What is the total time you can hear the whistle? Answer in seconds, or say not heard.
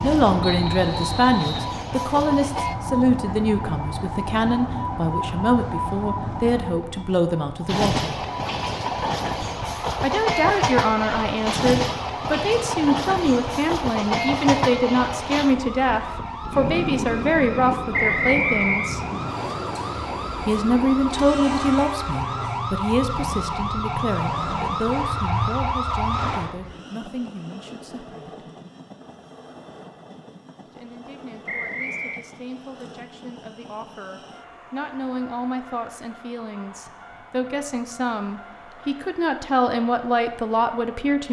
3 s.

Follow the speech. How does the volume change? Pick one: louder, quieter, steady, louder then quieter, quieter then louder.
quieter then louder.